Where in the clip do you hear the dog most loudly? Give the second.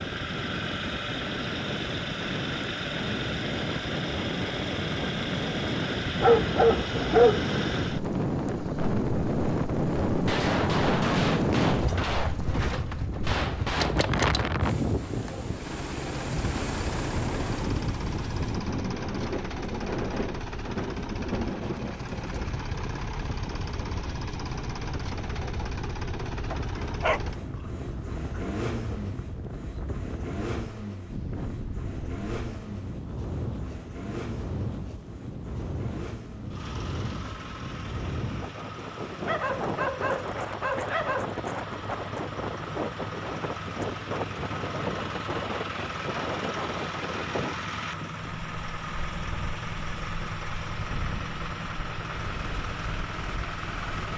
7 s.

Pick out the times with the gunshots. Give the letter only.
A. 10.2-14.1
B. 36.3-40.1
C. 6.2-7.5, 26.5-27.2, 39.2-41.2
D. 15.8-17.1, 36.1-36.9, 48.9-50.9
A.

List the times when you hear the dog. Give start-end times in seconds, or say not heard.
6.2-7.5, 26.5-27.2, 39.2-41.2.